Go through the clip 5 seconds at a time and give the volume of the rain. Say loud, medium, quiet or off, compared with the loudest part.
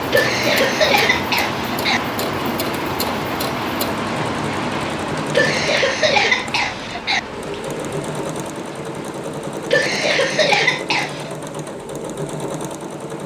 loud, medium, quiet.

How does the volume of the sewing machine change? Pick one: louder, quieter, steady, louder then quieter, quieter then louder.
steady.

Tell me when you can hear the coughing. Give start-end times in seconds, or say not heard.
0.1-2.0, 5.3-7.2, 9.7-11.3.